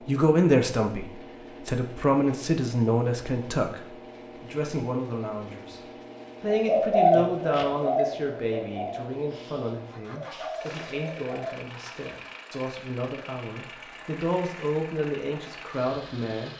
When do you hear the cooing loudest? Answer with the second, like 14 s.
7 s.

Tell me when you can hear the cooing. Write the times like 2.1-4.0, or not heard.
6.5-11.6.